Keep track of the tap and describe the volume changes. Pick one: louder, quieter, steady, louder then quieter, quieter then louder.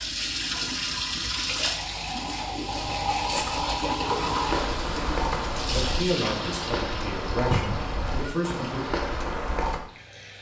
quieter.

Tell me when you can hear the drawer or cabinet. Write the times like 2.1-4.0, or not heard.
7.5-7.9.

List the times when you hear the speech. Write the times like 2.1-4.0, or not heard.
5.5-8.8.